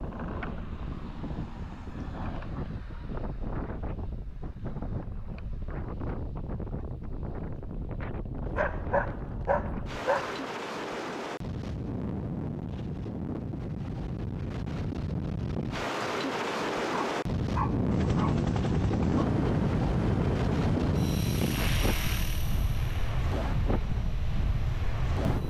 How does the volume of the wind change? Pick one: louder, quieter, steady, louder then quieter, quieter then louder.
louder.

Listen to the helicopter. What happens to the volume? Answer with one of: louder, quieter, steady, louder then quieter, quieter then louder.
quieter.